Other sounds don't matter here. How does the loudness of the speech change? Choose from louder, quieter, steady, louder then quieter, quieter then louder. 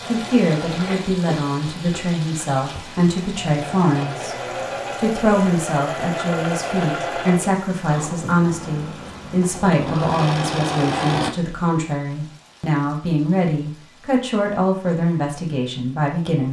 steady.